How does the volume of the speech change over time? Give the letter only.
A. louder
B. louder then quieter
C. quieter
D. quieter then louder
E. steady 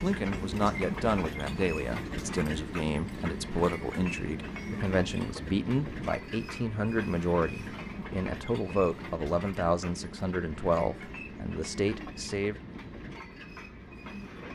E.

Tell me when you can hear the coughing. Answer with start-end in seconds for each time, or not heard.
not heard.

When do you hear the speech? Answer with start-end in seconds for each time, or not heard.
0.0-12.6.